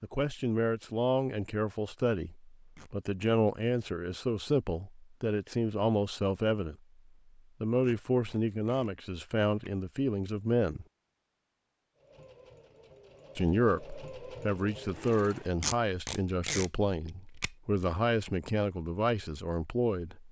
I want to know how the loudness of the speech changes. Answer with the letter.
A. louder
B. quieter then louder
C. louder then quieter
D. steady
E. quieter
D.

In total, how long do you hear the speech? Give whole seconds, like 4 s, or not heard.
17 s.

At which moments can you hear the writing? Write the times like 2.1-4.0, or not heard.
not heard.